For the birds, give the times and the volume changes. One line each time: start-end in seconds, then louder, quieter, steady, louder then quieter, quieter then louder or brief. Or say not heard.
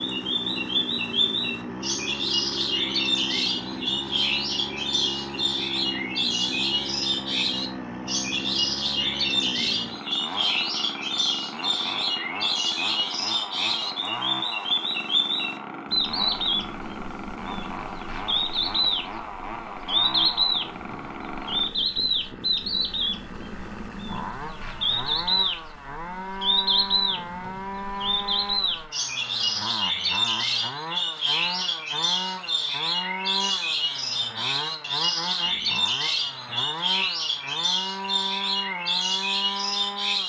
0.0-40.2 steady.